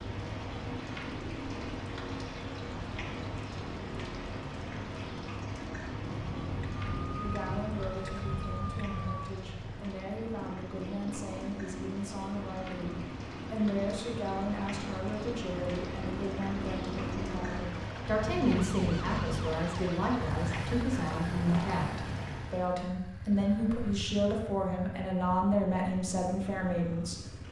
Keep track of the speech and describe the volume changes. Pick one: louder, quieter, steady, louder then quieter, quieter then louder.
louder.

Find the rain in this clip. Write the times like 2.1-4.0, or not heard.
0.0-22.8.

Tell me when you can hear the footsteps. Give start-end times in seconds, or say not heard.
not heard.